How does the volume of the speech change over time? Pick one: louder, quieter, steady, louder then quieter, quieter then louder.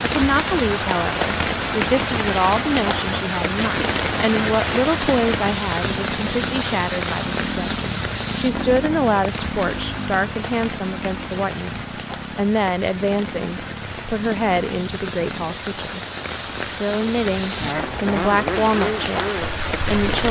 steady.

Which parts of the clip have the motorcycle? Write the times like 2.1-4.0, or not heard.
0.0-15.5, 17.6-20.2.